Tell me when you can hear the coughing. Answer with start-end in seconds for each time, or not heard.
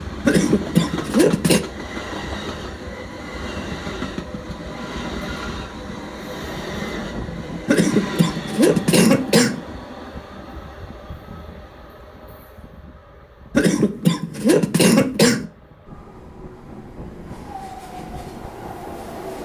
0.2-1.6, 7.7-9.6, 13.6-15.5.